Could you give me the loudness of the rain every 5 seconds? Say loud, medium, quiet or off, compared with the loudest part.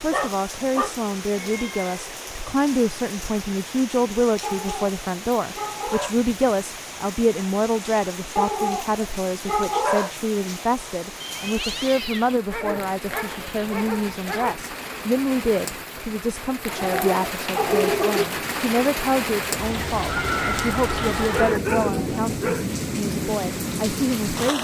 medium, medium, medium, loud, loud.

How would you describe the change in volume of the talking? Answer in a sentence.
The volume of the talking stays about the same.